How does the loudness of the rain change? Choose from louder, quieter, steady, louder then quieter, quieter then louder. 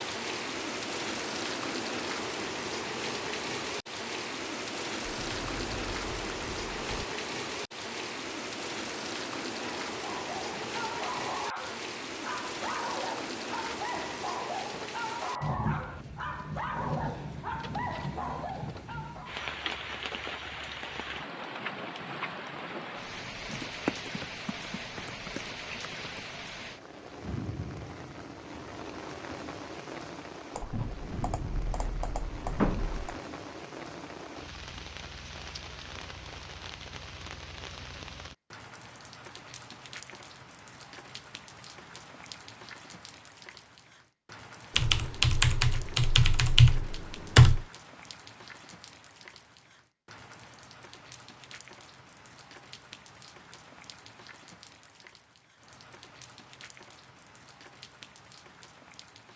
quieter.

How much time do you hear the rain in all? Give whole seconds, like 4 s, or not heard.
59 s.